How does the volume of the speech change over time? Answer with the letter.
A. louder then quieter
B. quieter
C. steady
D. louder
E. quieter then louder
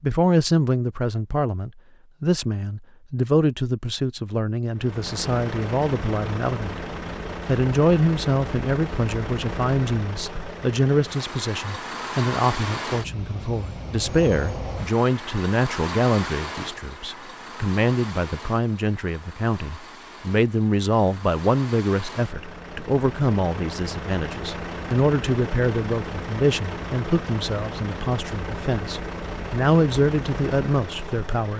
C.